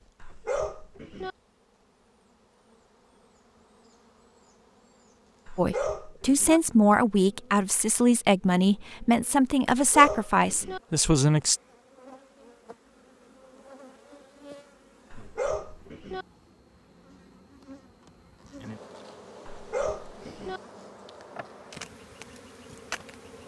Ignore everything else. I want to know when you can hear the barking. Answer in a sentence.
The barking can be heard from 0.2 to 1.3 s, from 5.5 to 6.6 s, from 9.7 to 10.8 s, from 15.1 to 16.2 s and from 19.4 to 20.6 s.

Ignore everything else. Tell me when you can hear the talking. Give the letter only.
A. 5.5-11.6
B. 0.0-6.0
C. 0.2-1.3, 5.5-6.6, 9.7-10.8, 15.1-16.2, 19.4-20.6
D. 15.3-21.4
A.